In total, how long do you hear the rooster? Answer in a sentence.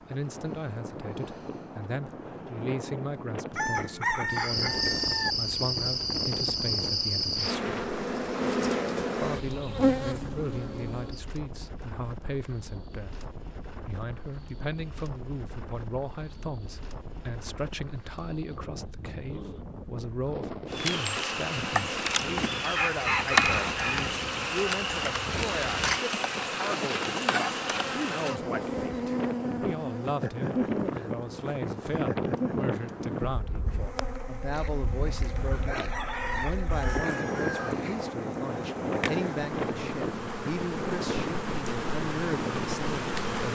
The rooster can be heard for 7 seconds in total.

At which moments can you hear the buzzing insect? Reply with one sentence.
The buzzing insect can be heard from 4.3 to 11.2 s and from 20.6 to 43.5 s.